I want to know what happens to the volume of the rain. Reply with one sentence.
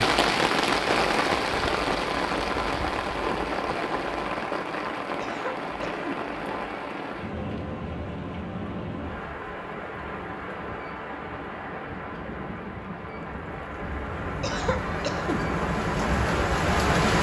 The volume of the rain goes down, then up.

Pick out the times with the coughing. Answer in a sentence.
You can hear the coughing from 5.2 to 6.2 s and from 14.4 to 15.4 s.